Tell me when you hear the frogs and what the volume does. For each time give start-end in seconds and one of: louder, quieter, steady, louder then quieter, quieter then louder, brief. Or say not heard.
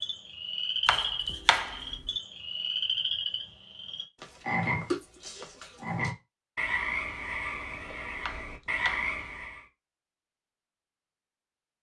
0.0-9.7 steady.